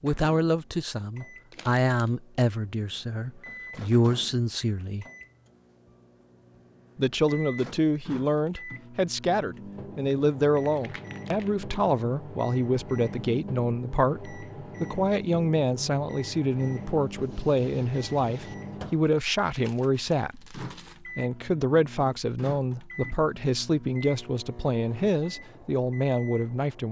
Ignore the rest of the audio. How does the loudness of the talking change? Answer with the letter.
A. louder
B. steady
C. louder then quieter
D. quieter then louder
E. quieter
B.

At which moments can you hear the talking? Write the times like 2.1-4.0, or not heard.
0.0-5.0, 7.0-26.8.